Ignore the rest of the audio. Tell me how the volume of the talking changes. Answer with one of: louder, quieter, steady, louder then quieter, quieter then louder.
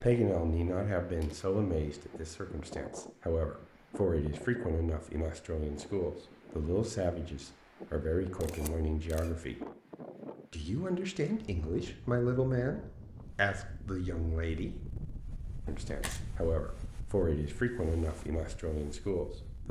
steady.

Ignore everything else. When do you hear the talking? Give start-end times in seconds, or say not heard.
0.0-9.6, 10.5-14.8, 15.7-19.6.